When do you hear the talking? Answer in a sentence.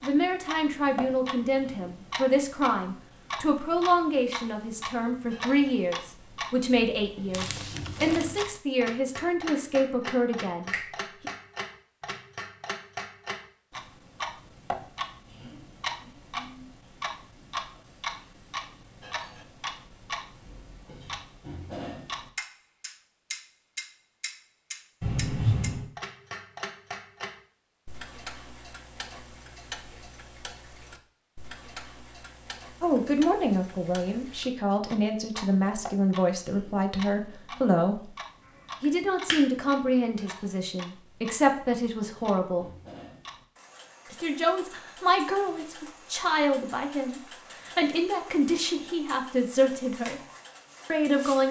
The talking can be heard from 0.0 to 11.3 s, from 32.8 to 38.1 s, from 38.8 to 42.7 s, from 44.1 to 50.2 s and from 50.9 to 51.4 s.